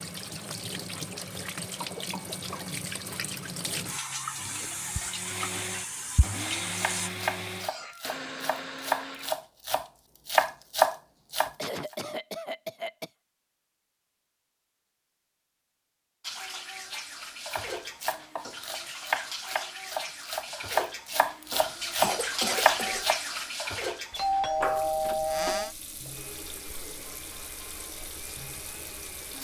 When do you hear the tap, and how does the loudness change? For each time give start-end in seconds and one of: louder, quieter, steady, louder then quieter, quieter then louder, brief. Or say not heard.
0.0-7.1 steady
16.2-29.3 louder then quieter.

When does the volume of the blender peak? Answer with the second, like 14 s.
7 s.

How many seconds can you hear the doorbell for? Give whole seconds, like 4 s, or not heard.
2 s.